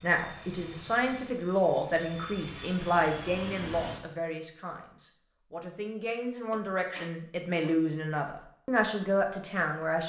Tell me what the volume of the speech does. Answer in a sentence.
The loudness of the speech goes down, then up.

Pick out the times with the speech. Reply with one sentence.
The speech can be heard from 0.0 to 10.0 s.